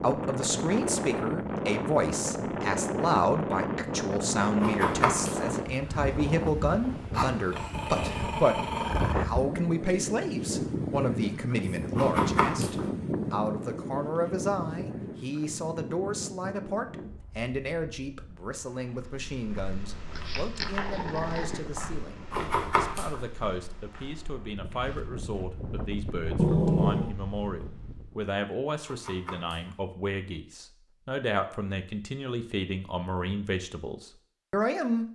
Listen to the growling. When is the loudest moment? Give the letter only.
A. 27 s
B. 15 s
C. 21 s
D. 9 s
A.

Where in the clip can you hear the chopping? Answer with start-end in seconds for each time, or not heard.
4.6-5.5, 11.9-12.9, 22.3-23.2, 28.9-29.8.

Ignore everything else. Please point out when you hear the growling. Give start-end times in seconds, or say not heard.
7.1-9.2, 20.1-21.6, 26.4-27.1.